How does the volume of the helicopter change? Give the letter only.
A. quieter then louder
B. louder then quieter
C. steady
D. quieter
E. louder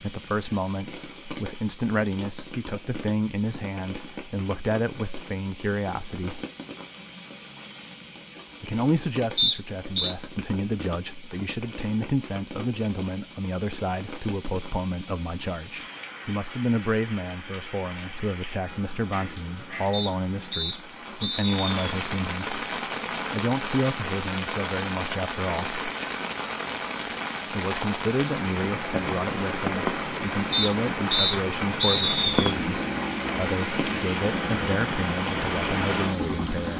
C.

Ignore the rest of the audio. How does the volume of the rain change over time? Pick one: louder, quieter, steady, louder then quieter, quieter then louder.
louder.